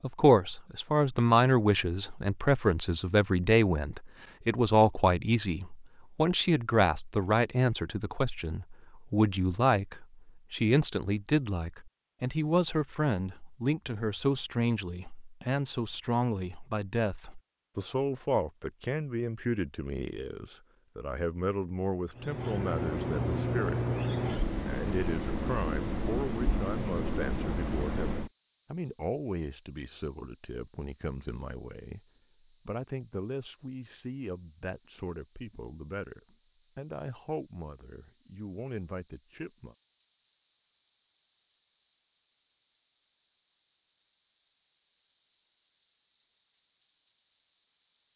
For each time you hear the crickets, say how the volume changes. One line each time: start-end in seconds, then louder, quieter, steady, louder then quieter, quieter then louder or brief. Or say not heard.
22.1-48.1 steady.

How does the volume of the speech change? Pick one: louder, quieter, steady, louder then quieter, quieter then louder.
quieter.